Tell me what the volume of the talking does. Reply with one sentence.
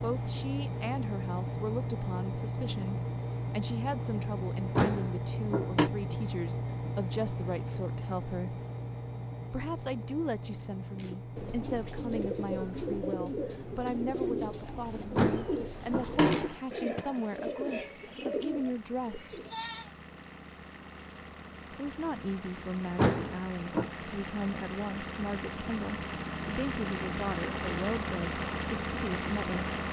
The volume of the talking stays about the same.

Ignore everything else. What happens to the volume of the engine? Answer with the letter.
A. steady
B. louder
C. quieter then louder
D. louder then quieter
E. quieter
C.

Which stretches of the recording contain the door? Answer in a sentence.
You can hear the door from 4.8 to 5.9 s, from 15.2 to 17.1 s and from 22.9 to 23.9 s.